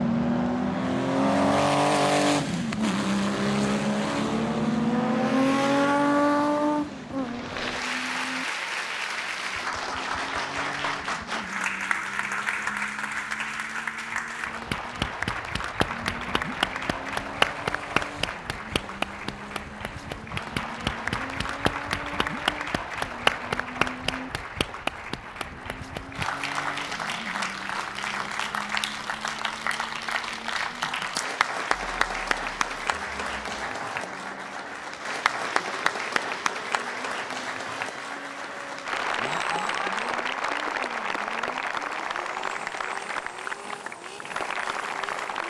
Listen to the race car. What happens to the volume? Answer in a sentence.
The volume of the race car goes down.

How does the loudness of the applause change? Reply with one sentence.
The loudness of the applause stays about the same.